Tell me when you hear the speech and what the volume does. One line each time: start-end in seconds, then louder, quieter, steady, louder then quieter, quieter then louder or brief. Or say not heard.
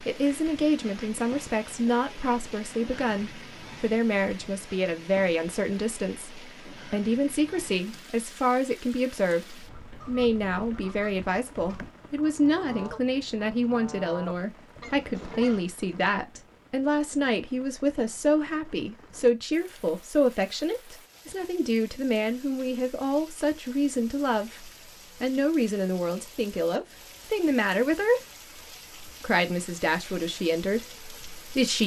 0.1-28.2 steady
29.0-31.8 brief.